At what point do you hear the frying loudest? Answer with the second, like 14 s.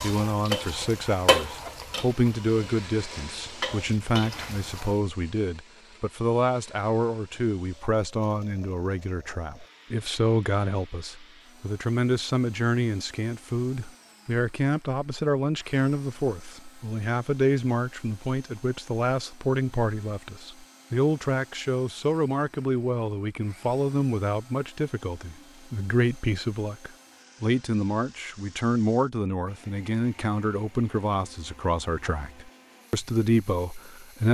1 s.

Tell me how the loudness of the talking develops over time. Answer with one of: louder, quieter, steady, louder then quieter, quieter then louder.
steady.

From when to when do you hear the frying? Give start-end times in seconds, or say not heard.
0.0-4.9.